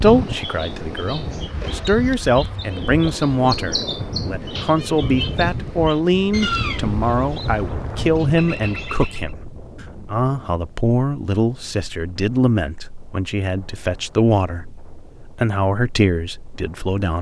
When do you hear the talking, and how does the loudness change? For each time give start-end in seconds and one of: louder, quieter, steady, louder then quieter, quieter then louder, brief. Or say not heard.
0.0-17.1 steady.